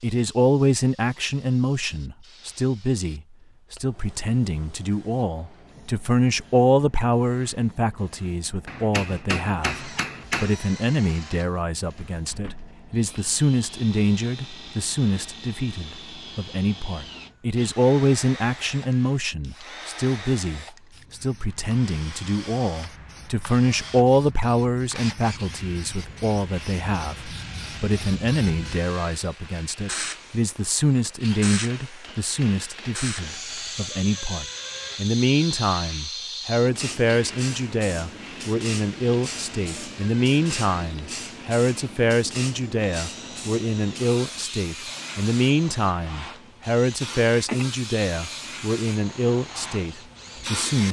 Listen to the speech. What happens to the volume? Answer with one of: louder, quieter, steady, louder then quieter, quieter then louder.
steady.